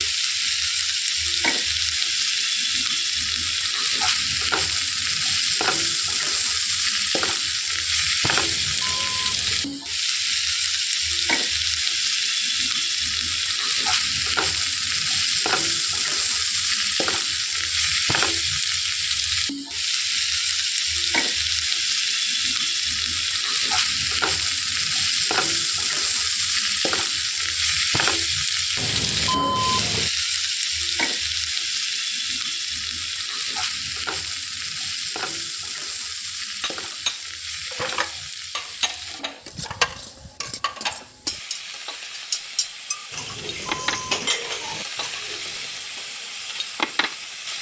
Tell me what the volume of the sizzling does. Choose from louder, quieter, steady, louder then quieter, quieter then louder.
quieter.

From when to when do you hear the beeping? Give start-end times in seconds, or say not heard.
8.3-9.8, 28.8-30.1, 43.1-44.3.